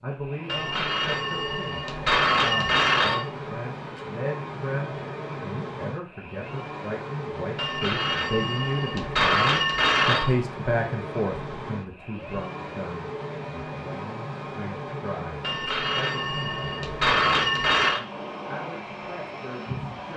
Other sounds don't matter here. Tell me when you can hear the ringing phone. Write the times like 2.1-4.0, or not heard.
0.5-3.2, 7.5-10.3, 15.4-18.0.